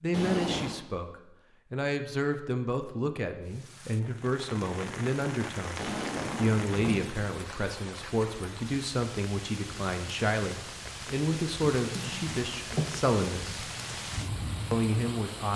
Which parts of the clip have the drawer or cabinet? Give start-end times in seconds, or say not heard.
0.1-0.8, 5.8-7.1, 11.8-12.9.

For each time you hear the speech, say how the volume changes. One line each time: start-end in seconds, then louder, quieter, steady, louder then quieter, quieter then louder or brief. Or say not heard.
0.0-13.7 steady
14.7-15.5 brief.